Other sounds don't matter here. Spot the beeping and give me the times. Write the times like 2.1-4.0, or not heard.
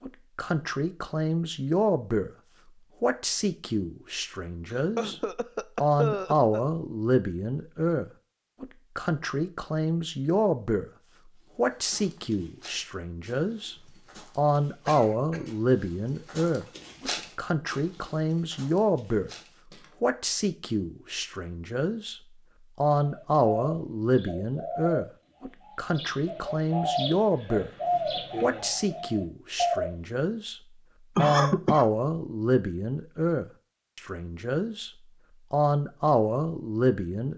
not heard.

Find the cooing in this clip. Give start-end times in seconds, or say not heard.
22.9-25.1, 25.6-29.9.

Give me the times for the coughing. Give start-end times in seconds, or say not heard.
4.7-6.6, 14.8-15.5, 31.1-31.9.